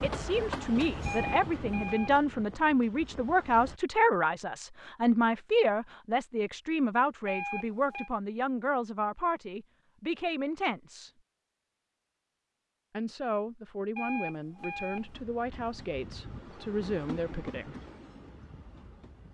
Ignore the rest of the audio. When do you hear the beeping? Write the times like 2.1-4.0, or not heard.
1.1-2.2, 7.2-8.1, 13.9-15.2.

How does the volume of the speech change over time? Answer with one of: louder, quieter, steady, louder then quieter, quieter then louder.
quieter.